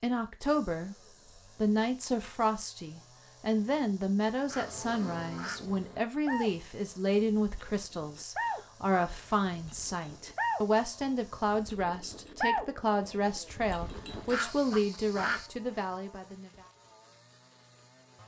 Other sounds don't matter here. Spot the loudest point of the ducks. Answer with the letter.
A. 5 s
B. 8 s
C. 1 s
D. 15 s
D.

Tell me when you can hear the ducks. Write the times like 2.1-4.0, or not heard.
4.5-5.7, 14.3-15.5.